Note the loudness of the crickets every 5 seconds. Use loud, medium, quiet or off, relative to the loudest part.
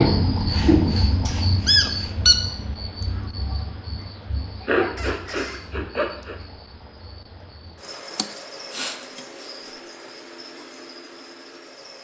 loud, quiet, quiet.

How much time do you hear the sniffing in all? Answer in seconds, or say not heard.
4 s.